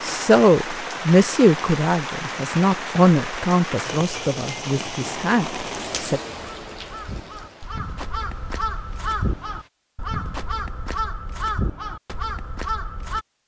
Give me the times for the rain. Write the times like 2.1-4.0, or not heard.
0.0-9.7.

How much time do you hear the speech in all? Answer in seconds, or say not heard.
6 s.